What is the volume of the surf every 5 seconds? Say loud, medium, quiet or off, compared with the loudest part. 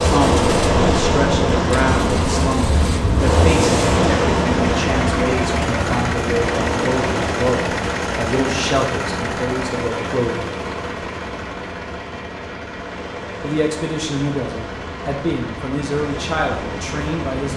loud, medium, quiet, quiet.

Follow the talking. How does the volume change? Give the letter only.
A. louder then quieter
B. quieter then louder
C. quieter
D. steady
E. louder
D.